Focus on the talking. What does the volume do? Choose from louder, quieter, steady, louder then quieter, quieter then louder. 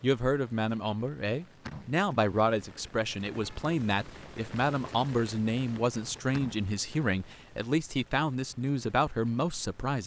steady.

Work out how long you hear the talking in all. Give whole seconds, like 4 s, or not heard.
10 s.